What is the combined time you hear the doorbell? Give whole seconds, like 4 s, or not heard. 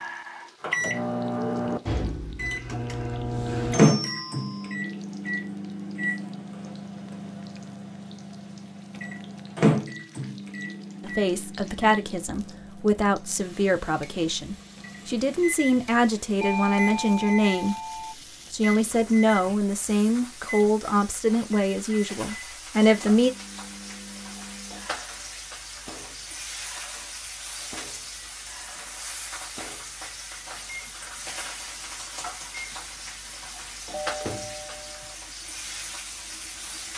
4 s.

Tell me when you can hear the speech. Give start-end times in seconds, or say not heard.
11.0-17.8, 18.5-23.3.